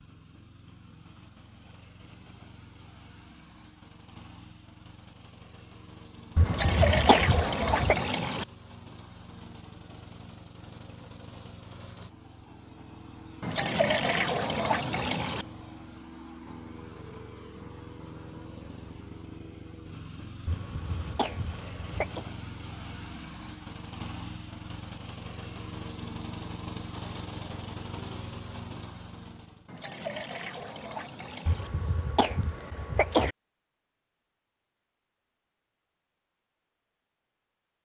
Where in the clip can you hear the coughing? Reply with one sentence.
You can hear the coughing from 6.3 to 8.0 s, from 20.4 to 22.2 s and from 31.4 to 33.4 s.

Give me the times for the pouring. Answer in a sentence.
The pouring can be heard from 6.5 to 8.4 s, from 13.4 to 15.4 s and from 29.6 to 31.7 s.